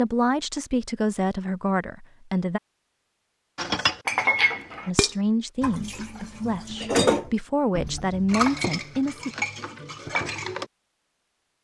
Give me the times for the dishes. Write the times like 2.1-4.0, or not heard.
3.5-10.7.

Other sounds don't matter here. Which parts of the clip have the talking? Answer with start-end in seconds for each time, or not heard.
0.0-2.6, 4.8-9.3.